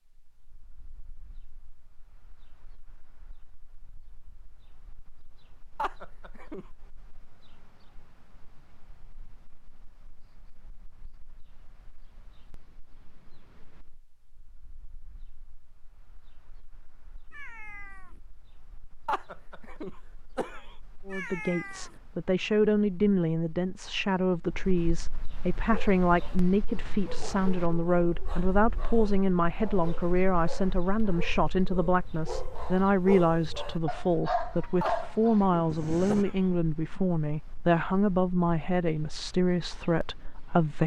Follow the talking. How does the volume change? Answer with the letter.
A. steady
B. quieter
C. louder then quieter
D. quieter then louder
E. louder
A.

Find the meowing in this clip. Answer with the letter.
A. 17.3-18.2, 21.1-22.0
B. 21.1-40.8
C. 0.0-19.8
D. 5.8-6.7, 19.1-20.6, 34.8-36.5
A.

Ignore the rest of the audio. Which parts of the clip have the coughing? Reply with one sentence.
You can hear the coughing from 5.8 to 6.7 s, from 19.1 to 20.6 s and from 34.8 to 36.5 s.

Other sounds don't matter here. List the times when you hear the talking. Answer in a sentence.
You can hear the talking from 21.1 to 40.8 s.